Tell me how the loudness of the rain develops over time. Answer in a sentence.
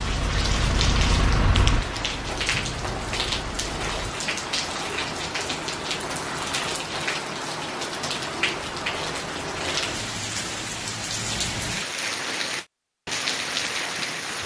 The loudness of the rain stays about the same.